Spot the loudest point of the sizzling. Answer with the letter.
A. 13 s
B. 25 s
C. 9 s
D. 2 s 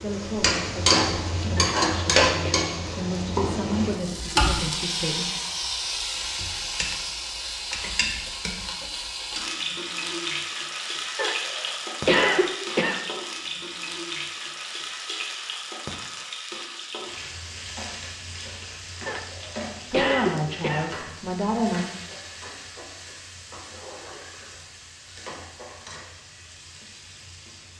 D.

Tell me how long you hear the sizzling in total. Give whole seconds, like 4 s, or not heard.
28 s.